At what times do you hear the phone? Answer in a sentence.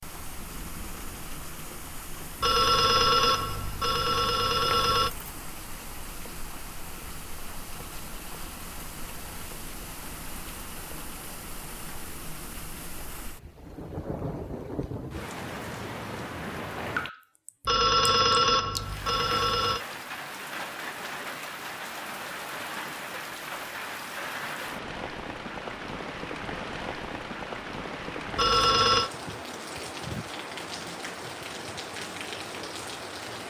The phone can be heard from 2.4 to 5.1 s, from 17.6 to 19.8 s and from 28.4 to 29.1 s.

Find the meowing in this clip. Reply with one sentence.
You can't hear the meowing here.